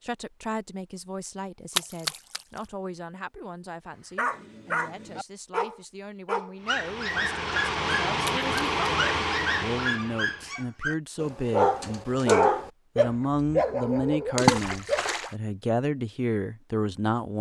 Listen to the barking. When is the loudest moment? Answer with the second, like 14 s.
12 s.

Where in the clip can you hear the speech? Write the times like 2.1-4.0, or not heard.
0.0-17.3.